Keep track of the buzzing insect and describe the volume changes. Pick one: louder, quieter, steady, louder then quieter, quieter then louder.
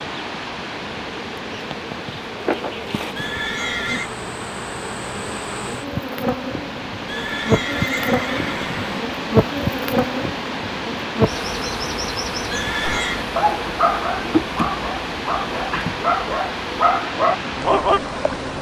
louder then quieter.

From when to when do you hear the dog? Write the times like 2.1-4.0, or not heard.
12.8-18.0.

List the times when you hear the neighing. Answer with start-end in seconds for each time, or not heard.
3.1-4.1, 7.0-9.1, 12.5-13.2.